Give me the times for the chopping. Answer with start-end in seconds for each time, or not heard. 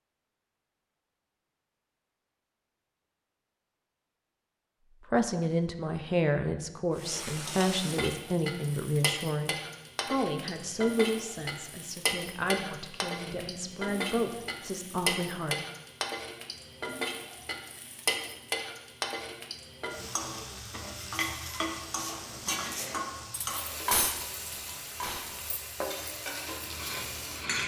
not heard.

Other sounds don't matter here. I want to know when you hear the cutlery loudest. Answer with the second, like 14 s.
24 s.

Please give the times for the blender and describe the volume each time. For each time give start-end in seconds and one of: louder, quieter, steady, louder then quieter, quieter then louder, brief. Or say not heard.
not heard.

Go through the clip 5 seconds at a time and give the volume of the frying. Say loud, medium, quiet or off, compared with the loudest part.
off, loud, loud, loud, loud, loud.